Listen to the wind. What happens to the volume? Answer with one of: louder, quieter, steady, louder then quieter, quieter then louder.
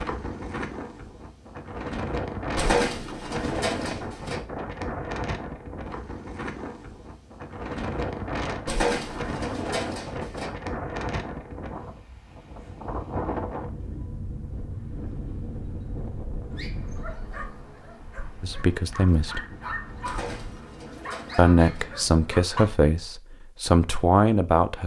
quieter.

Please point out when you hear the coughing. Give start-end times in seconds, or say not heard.
not heard.